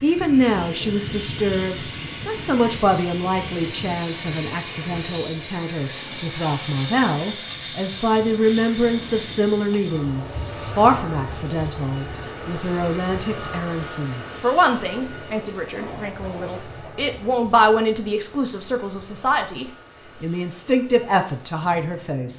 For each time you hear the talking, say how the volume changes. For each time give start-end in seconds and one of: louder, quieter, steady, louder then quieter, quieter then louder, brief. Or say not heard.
0.0-22.3 steady.